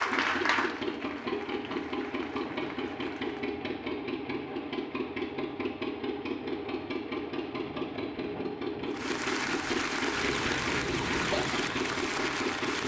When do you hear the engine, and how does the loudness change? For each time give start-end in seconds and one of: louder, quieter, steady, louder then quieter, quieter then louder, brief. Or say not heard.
0.0-12.8 steady.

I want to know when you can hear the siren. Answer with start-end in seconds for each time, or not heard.
10.1-12.8.